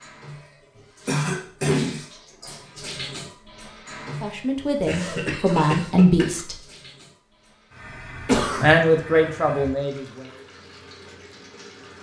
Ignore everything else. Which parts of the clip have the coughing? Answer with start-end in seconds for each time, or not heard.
1.1-2.0, 4.8-6.4, 8.2-8.7.